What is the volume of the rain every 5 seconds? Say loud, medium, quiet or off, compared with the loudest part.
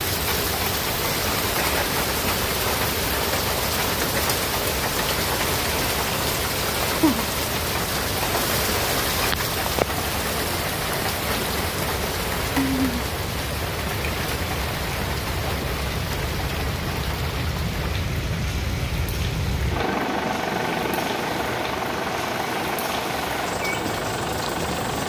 loud, loud, loud, medium, medium.